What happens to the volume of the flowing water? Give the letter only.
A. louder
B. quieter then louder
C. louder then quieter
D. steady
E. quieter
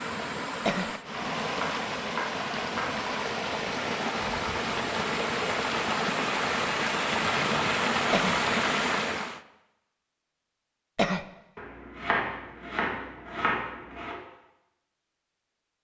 A.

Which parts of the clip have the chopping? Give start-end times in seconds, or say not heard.
1.6-3.0, 11.6-14.2.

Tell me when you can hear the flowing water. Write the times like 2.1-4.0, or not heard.
0.0-9.4.